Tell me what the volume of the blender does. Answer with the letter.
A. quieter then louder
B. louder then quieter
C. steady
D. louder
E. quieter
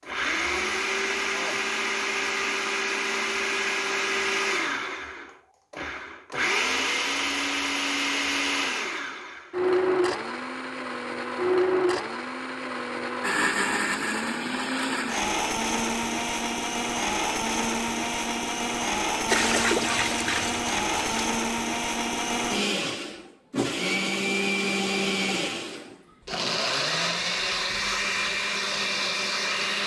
C.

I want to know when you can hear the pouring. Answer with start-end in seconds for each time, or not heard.
19.2-21.2.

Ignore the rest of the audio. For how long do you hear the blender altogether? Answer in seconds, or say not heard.
30 s.